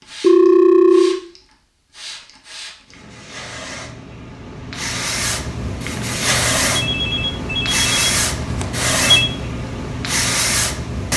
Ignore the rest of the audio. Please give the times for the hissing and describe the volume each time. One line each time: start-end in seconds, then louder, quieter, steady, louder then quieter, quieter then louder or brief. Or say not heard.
0.0-11.1 louder.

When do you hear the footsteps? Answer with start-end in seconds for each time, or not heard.
not heard.